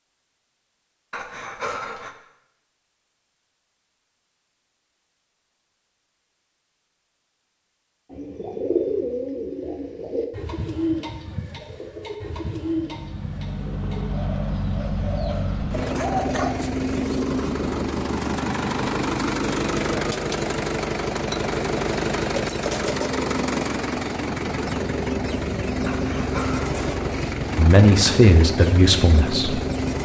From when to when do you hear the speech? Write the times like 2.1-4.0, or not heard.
27.6-29.6.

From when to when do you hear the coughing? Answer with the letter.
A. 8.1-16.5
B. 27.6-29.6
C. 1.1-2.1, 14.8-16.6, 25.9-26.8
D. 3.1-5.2
C.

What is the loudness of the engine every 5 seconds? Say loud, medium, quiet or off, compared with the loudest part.
off, off, medium, loud, loud, loud.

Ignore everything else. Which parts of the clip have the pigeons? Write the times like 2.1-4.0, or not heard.
8.1-16.5.